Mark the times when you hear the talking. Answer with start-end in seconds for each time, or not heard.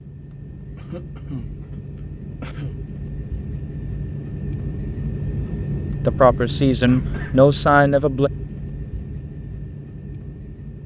6.0-8.3.